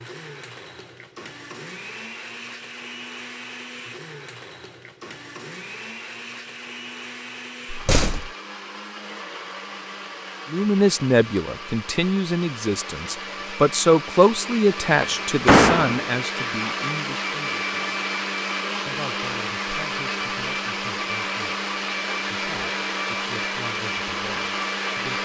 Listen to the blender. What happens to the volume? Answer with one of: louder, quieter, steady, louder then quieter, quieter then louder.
louder.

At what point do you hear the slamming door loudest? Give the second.
16 s.